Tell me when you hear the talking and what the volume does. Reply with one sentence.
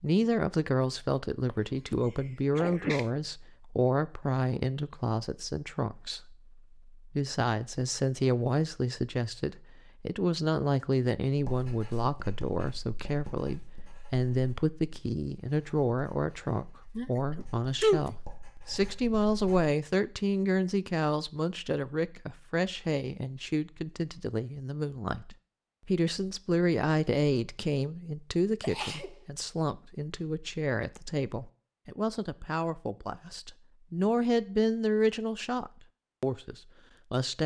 You can hear the talking from 0.0 to 37.4 s, at a steady volume.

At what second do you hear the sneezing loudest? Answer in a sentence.
The loudest moment of the sneezing is at 18 seconds.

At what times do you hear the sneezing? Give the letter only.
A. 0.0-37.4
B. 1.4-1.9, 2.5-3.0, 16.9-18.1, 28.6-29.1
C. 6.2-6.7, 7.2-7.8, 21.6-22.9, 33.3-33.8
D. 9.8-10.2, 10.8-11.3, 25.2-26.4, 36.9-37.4
B.